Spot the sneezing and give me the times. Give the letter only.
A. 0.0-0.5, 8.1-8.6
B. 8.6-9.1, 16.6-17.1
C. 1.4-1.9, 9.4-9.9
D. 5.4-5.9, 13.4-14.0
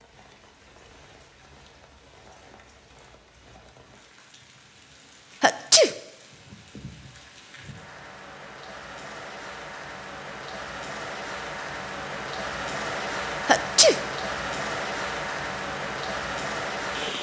D.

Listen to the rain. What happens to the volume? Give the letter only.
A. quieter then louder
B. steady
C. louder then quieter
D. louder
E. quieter
D.